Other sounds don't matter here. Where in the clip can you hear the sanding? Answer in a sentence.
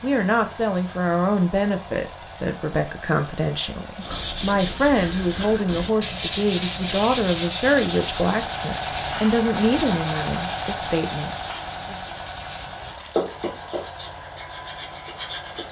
You can hear the sanding from 4.0 to 15.6 s.